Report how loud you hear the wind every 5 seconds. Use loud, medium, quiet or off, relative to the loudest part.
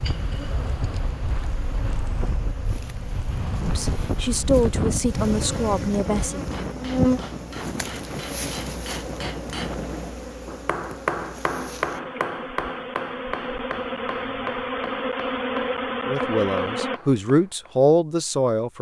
loud, loud, off, off.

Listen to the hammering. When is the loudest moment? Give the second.
11 s.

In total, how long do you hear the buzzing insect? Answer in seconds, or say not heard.
17 s.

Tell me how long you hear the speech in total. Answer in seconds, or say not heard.
5 s.